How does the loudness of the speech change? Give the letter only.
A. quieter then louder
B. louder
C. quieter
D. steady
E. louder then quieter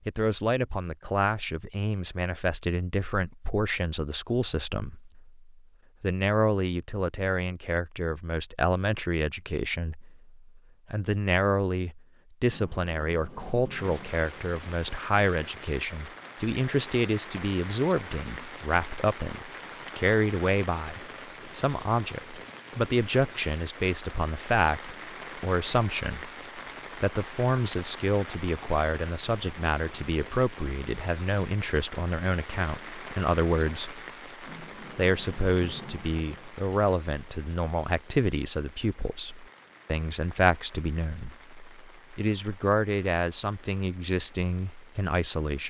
D.